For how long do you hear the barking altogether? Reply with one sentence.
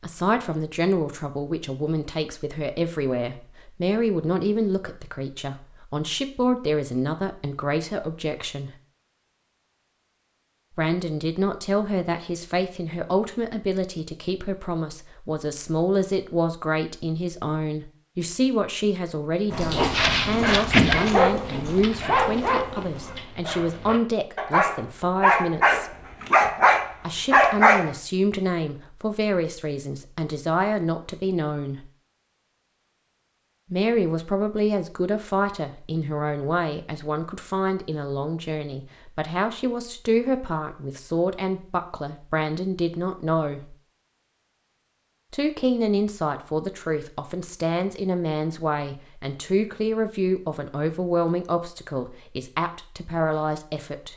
The barking can be heard for 8 seconds in total.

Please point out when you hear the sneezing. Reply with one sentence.
You can't hear the sneezing here.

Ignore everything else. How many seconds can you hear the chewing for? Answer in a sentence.
The chewing can be heard for 4 seconds in total.